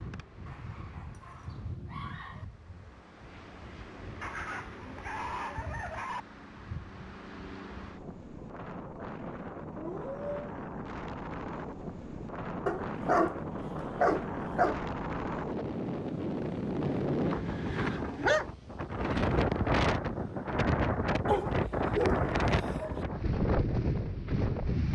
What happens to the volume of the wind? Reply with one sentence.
The loudness of the wind goes up.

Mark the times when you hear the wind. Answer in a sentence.
You can hear the wind from 0.0 to 24.9 s.